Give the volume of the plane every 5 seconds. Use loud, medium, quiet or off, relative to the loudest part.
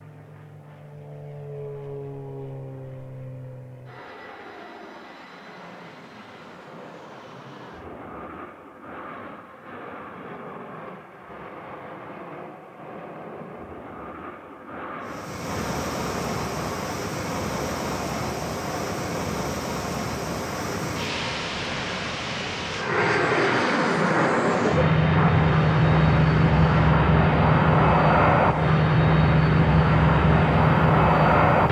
quiet, quiet, quiet, quiet, medium, loud, loud.